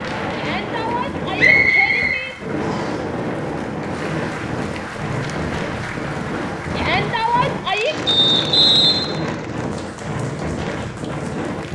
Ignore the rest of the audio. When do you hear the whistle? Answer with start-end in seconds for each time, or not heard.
1.4-3.0, 8.1-8.9.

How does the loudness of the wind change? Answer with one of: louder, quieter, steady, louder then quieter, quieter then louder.
steady.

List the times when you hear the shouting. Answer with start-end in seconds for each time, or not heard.
0.3-2.4, 6.8-8.0.